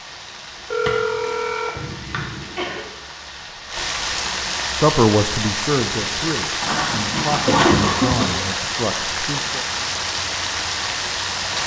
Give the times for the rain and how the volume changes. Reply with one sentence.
You can hear the rain from 0.0 to 11.6 s, getting louder.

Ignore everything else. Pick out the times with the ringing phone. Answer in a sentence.
You can hear the ringing phone from 0.7 to 2.5 s and from 6.6 to 7.8 s.